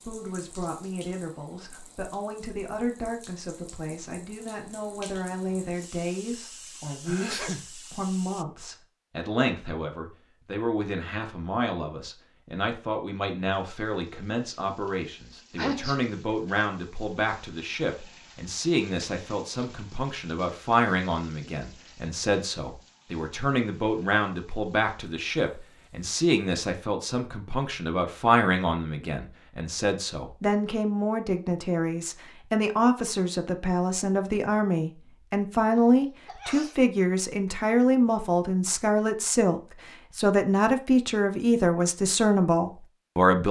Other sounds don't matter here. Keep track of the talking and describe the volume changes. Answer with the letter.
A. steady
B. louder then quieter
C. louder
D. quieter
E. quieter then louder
C.